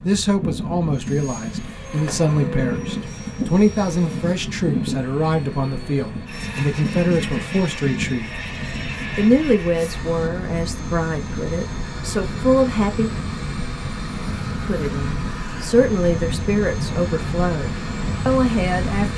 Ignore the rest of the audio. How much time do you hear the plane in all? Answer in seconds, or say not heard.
19 s.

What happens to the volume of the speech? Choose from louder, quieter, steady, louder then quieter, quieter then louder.
steady.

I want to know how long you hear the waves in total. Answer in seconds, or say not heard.
19 s.